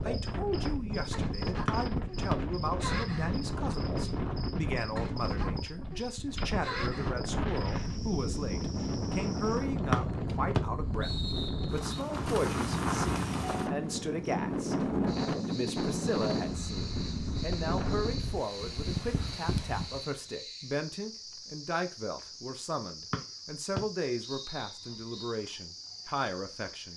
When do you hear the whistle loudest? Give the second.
10 s.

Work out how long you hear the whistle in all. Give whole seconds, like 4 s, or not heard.
5 s.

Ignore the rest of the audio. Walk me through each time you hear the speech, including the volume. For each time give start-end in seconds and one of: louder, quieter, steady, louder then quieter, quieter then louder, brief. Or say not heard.
0.0-11.1 steady
11.7-26.9 steady.